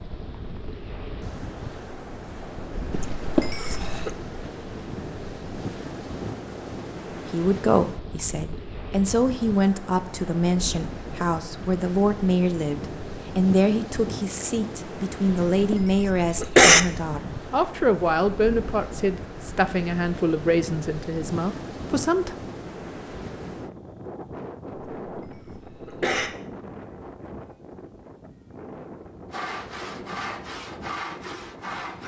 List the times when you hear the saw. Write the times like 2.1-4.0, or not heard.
29.3-32.0.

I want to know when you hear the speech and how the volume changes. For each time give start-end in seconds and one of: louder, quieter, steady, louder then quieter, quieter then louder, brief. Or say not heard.
7.1-22.4 steady.